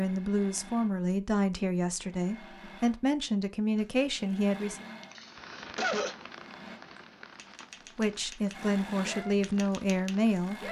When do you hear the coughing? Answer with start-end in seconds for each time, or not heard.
5.0-6.2.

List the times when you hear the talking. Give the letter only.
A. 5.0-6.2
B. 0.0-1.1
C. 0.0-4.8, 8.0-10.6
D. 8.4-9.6
C.